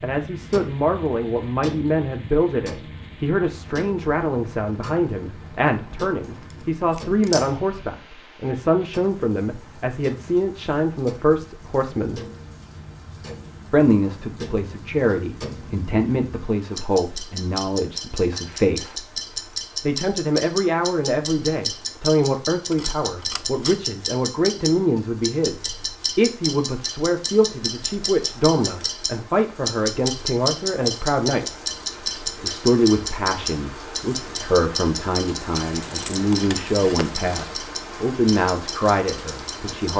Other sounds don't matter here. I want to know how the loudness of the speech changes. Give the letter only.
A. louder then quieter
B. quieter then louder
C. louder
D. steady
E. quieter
D.